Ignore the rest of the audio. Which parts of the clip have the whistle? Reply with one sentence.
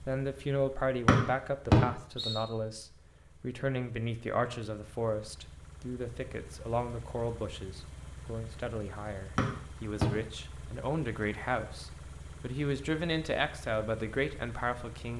You can hear the whistle from 1.1 to 2.4 s and from 9.3 to 10.1 s.